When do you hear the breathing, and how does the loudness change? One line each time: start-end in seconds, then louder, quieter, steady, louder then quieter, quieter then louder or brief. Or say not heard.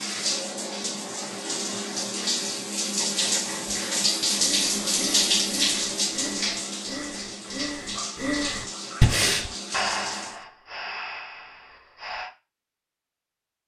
3.0-12.3 louder then quieter.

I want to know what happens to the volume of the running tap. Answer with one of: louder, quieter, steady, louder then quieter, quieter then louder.
louder then quieter.